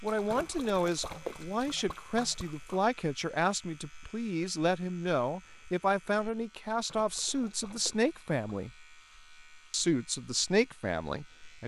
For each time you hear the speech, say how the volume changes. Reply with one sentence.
The speech can be heard from 0.0 to 8.7 s, at a steady volume; and briefly from 9.7 to 11.6 s.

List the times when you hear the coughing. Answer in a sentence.
You can't hear the coughing here.